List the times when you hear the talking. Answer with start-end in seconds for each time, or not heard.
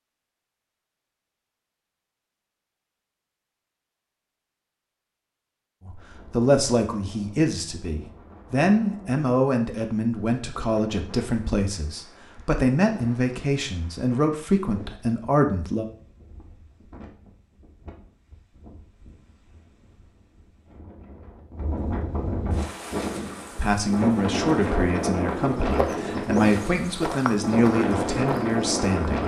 5.8-15.8, 23.6-29.2.